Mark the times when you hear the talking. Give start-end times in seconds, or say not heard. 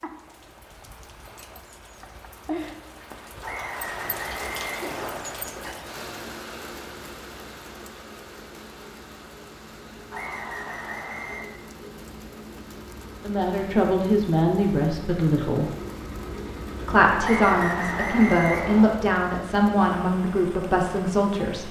13.2-15.7, 16.9-21.6.